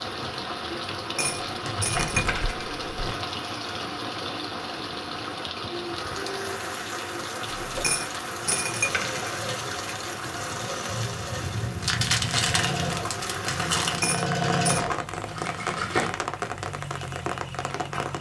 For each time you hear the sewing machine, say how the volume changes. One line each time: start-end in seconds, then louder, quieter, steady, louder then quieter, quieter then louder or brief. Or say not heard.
7.5-16.1 louder.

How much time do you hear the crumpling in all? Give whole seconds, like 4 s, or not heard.
4 s.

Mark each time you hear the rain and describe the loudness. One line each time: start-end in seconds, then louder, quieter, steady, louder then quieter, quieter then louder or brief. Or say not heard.
0.0-18.1 steady.